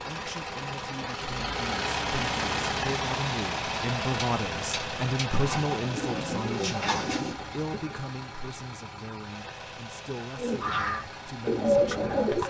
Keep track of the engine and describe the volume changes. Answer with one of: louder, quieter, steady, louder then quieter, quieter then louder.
quieter.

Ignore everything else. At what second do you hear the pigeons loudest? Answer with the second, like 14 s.
12 s.